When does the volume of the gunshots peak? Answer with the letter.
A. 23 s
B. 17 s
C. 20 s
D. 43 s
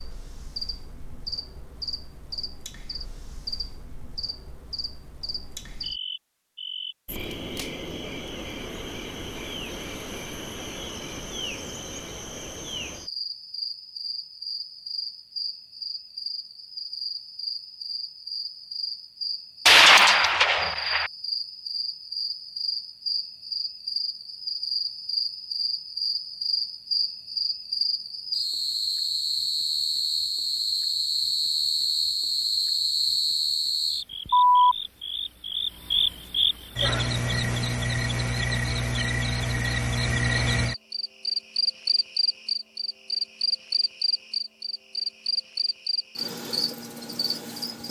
C.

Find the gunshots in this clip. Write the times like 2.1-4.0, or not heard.
19.6-21.1.